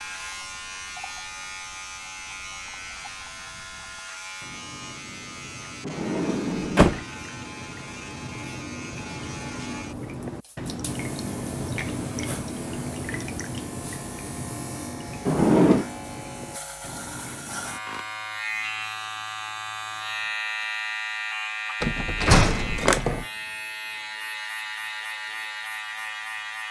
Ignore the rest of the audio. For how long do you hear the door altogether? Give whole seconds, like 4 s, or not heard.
3 s.